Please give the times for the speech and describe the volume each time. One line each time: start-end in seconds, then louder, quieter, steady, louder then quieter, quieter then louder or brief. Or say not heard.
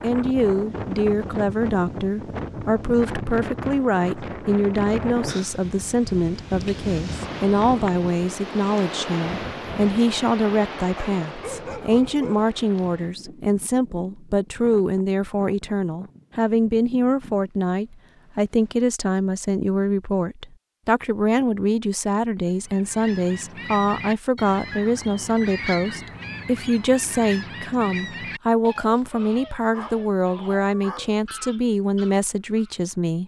0.0-33.2 steady.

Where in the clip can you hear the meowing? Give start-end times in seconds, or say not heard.
not heard.